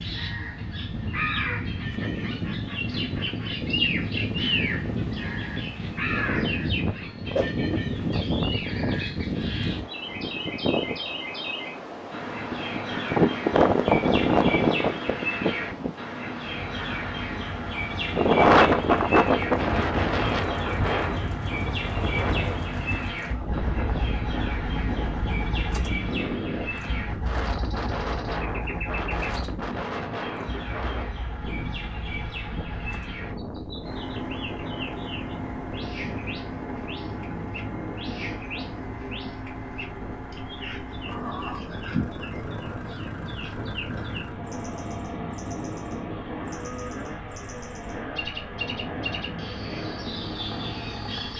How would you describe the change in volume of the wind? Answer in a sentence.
The volume of the wind goes up, then down.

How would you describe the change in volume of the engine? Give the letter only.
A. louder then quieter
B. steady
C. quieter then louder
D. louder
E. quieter
B.